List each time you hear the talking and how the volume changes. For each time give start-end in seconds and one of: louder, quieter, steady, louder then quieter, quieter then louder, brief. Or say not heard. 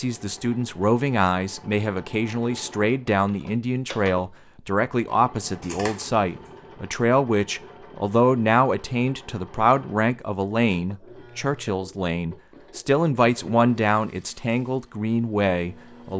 0.0-16.1 steady.